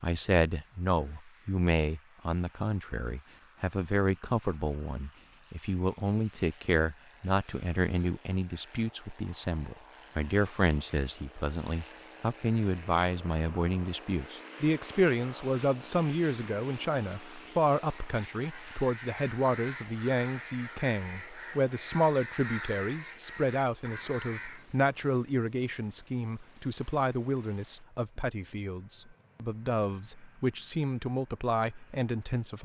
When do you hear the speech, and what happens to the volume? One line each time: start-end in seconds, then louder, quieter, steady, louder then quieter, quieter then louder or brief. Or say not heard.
0.0-32.6 steady.